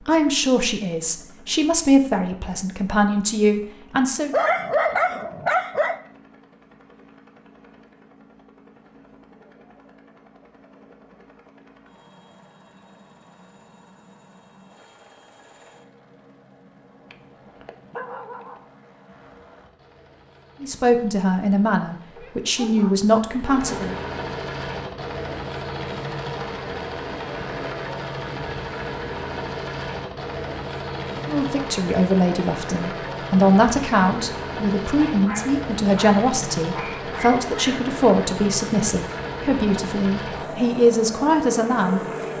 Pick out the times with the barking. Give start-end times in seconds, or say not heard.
4.3-6.0, 17.1-18.6, 22.1-23.7, 35.1-37.9.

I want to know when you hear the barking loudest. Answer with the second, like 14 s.
5 s.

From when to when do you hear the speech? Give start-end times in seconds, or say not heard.
0.1-4.3, 20.6-23.9, 31.1-42.3.